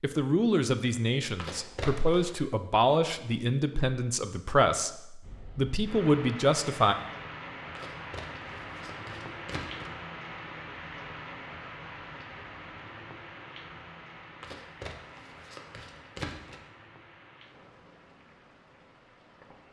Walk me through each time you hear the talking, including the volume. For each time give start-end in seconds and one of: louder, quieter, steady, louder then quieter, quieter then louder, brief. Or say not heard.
0.0-7.0 steady.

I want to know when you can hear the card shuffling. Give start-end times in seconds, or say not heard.
1.4-2.5, 7.8-9.9, 14.4-16.6.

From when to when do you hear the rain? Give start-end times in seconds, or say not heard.
5.2-19.6.